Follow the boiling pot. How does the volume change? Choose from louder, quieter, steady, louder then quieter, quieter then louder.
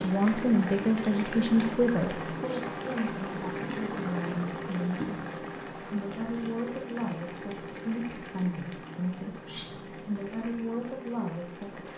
quieter.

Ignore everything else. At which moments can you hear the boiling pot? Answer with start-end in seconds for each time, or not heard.
0.0-11.9.